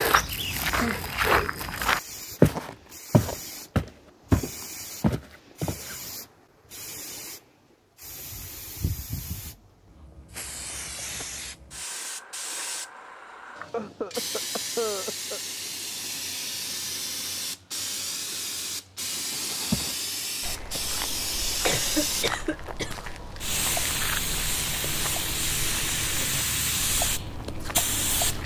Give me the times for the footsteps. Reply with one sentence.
You can hear the footsteps from 0.0 to 6.0 s and from 19.7 to 28.4 s.